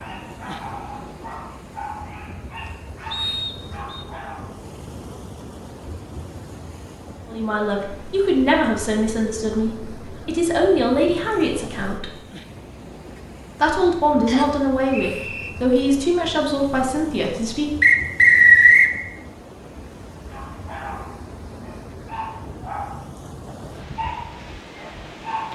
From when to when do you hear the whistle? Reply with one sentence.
You can hear the whistle from 3.1 to 4.0 s, from 14.2 to 15.5 s and from 17.8 to 18.9 s.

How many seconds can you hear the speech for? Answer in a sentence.
The speech can be heard for 9 seconds in total.